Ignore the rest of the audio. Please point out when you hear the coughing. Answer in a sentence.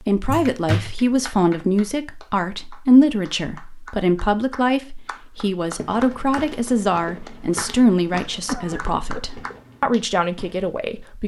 You can hear the coughing from 0.2 to 0.9 s and from 8.4 to 9.2 s.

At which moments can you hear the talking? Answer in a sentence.
You can hear the talking from 0.1 to 11.2 s.